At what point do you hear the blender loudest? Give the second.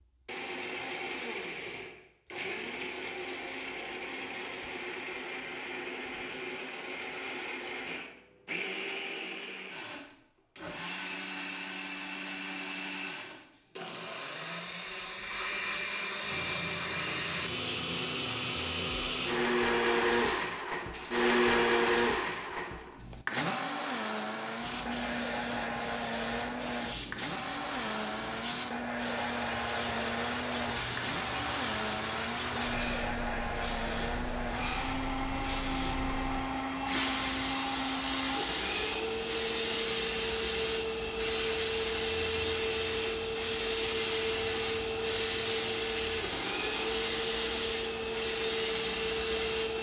22 s.